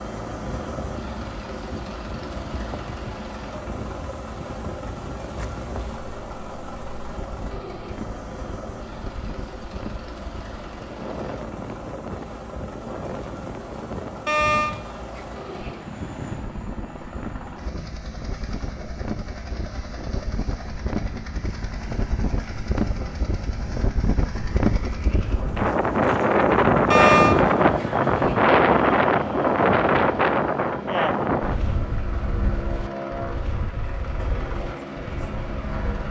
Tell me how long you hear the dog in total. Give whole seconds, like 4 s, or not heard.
3 s.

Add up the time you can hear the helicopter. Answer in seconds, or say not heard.
36 s.